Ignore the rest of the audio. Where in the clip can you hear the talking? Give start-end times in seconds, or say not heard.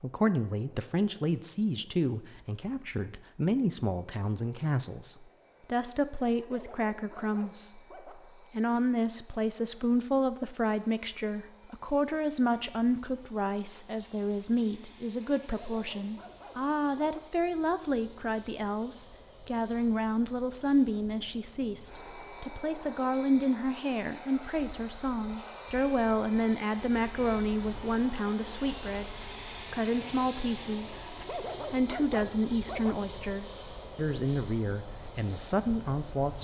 0.0-31.1, 31.7-36.3.